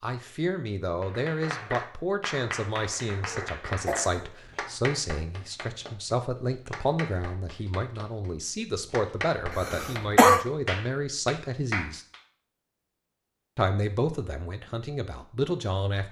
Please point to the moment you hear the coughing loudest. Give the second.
10 s.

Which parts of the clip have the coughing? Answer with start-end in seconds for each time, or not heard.
3.2-4.2, 9.5-10.4.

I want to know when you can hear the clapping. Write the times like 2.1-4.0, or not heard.
1.0-12.2.